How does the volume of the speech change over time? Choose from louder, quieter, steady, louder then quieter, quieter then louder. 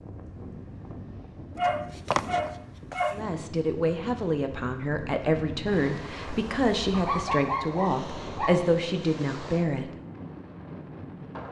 steady.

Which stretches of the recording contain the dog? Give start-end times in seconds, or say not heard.
1.6-3.2, 6.9-8.7.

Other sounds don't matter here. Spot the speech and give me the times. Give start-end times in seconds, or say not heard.
3.1-9.9.